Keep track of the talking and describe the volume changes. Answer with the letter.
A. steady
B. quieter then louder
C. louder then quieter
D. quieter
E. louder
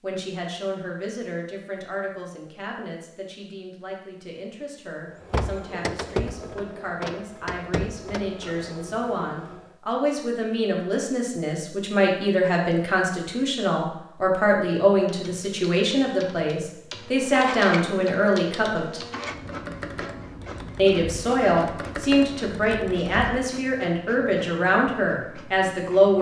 E.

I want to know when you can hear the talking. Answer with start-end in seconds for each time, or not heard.
0.0-19.0, 20.8-26.1.